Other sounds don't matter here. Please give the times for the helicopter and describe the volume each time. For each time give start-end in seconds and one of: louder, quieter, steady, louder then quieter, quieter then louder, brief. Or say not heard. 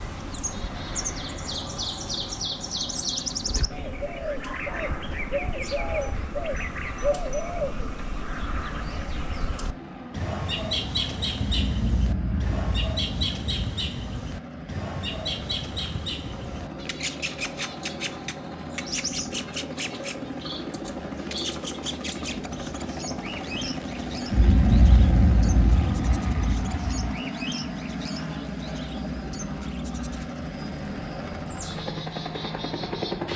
0.0-33.3 louder.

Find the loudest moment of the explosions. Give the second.
25 s.